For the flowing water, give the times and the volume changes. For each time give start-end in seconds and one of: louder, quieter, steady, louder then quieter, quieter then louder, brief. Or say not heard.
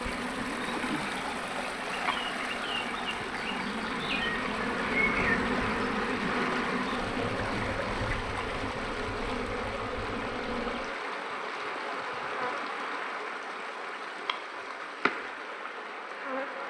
0.0-16.6 quieter.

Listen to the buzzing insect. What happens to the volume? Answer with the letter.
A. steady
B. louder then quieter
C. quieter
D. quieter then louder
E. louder
B.